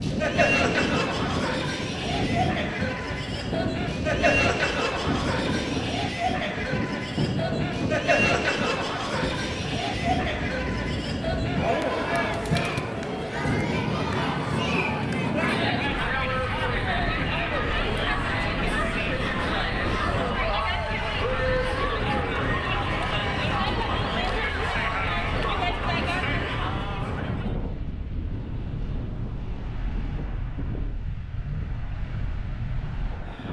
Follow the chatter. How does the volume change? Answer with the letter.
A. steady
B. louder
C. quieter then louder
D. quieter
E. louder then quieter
A.